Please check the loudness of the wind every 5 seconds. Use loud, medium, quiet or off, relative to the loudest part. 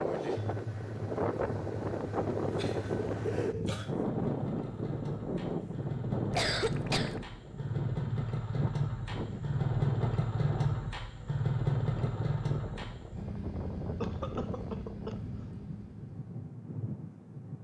loud, loud, medium, medium.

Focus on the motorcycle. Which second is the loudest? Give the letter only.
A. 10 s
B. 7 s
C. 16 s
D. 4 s
A.